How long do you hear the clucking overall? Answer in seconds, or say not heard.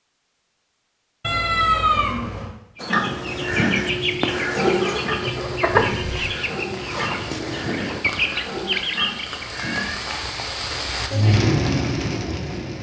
7 s.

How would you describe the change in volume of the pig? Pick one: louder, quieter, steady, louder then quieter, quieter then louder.
quieter.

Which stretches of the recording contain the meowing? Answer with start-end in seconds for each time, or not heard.
1.2-2.5, 5.8-6.3, 9.5-10.2.